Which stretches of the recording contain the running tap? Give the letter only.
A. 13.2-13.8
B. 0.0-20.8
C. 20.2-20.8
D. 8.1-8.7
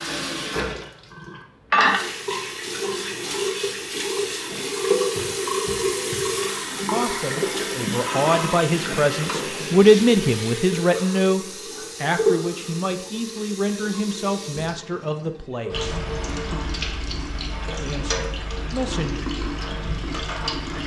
B.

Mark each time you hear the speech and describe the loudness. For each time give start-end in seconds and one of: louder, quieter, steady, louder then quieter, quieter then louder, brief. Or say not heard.
6.9-15.9 louder then quieter
17.8-19.3 brief.